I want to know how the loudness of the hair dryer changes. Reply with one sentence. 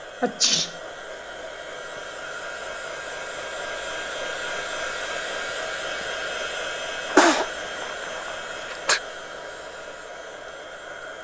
The loudness of the hair dryer goes up, then down.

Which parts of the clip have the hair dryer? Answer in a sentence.
You can hear the hair dryer from 0.0 to 11.1 s.